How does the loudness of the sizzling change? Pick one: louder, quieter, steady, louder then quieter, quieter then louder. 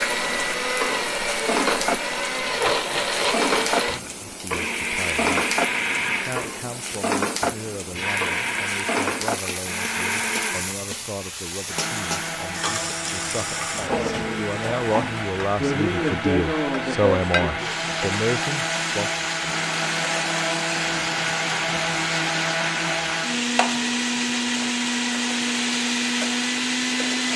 steady.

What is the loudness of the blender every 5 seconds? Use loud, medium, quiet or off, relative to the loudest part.
loud, loud, medium, loud, loud, loud.